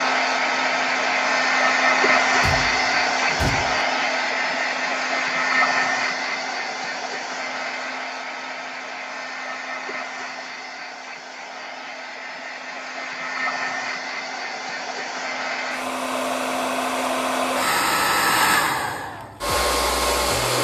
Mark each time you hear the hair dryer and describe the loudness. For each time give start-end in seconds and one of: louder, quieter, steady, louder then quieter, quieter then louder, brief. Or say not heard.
0.0-20.6 quieter then louder.